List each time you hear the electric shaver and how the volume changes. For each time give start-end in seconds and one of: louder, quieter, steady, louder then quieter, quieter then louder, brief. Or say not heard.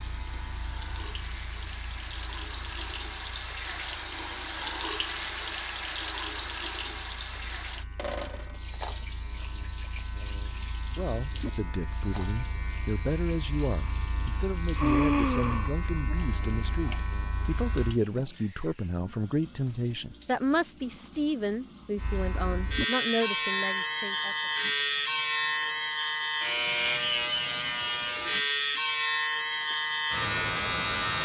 0.0-18.0 quieter then louder
21.9-31.2 steady.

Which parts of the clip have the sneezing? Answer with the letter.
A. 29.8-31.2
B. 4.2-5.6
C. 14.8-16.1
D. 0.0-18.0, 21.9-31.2
C.